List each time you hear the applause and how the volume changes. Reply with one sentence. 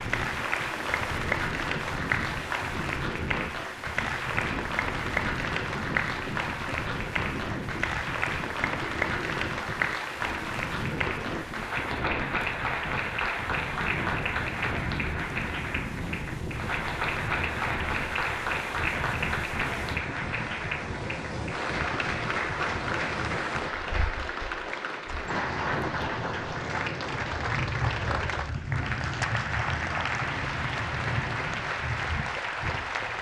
You can hear the applause from 0.0 to 33.1 s, at a steady volume.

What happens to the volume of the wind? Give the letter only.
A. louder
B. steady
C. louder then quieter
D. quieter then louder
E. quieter
B.